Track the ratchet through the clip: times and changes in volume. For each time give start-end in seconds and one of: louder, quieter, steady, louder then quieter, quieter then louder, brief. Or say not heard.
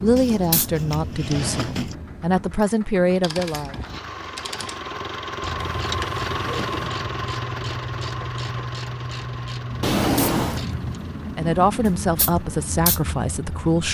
3.1-11.0 louder.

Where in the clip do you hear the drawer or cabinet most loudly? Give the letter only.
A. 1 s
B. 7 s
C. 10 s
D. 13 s
C.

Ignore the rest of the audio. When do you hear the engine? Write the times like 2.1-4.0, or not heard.
1.8-13.8.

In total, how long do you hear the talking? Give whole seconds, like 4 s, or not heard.
6 s.